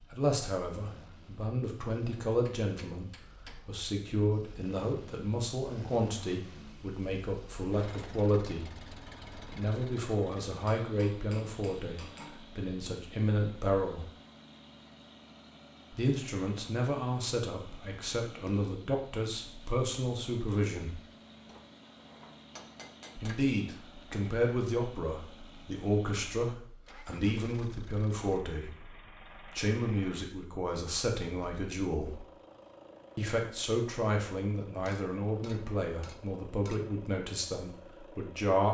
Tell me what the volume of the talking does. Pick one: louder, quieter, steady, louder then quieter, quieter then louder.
steady.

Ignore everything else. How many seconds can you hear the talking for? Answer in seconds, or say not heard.
34 s.